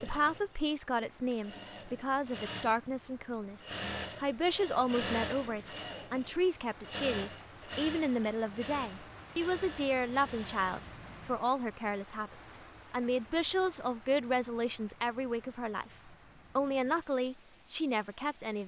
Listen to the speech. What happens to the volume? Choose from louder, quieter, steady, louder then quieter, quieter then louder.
steady.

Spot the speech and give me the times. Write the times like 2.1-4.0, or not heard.
0.0-18.6.